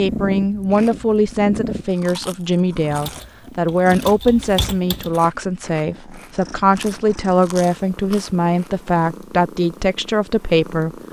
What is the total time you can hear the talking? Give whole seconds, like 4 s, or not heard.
11 s.